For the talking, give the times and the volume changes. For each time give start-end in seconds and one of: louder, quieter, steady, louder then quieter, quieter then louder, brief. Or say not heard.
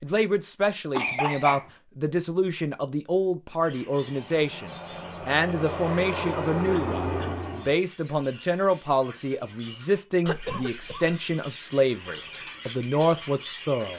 0.0-13.9 steady.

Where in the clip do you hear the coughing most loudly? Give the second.
1 s.